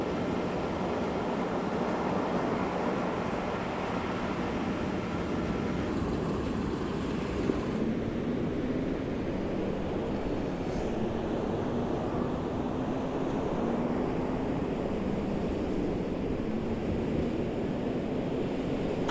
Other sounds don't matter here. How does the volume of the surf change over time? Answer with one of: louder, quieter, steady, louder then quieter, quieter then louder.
steady.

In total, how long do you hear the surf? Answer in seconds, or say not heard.
19 s.